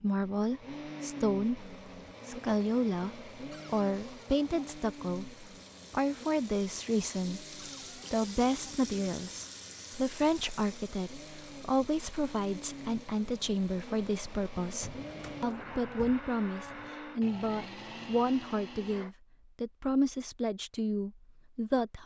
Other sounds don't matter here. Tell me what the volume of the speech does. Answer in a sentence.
The volume of the speech stays about the same.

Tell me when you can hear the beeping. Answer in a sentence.
You can't hear the beeping here.